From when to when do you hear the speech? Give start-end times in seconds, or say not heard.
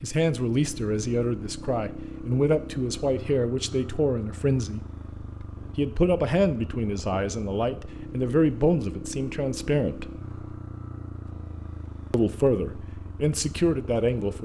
0.0-4.8, 5.8-10.1, 12.1-14.3.